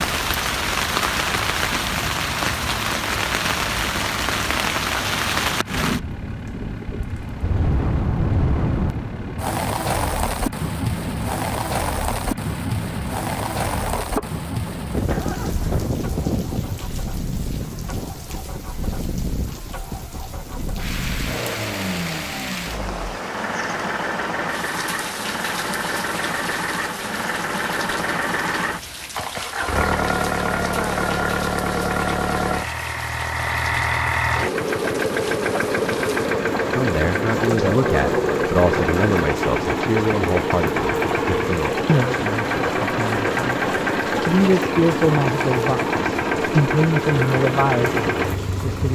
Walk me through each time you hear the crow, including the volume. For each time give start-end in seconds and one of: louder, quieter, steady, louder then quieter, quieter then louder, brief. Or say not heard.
not heard.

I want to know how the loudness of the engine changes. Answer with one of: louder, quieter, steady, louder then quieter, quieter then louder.
louder.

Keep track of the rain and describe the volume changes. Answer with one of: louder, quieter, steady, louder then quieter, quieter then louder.
quieter.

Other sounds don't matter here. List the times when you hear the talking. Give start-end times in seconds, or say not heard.
36.8-48.8.